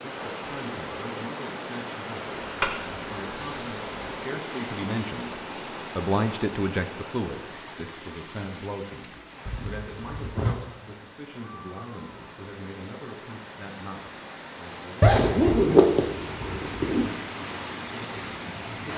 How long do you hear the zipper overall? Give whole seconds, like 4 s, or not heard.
5 s.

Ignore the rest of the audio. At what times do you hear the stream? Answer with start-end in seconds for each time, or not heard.
0.0-18.9.